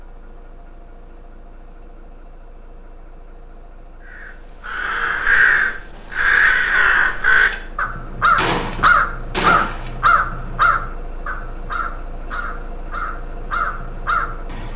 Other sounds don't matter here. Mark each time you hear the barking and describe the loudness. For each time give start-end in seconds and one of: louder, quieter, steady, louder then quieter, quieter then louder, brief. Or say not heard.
not heard.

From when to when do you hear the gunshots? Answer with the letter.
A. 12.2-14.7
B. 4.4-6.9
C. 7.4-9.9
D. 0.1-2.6
C.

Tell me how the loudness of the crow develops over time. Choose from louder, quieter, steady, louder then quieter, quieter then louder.
quieter.